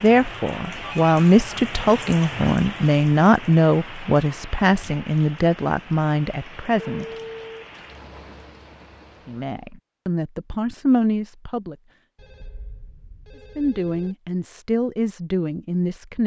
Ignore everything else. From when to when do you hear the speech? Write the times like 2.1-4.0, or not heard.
0.0-7.0, 9.2-11.8, 13.6-16.2.